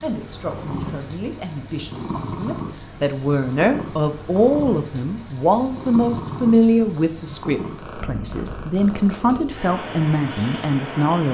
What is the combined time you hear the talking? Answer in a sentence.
You can hear the talking for 11 seconds altogether.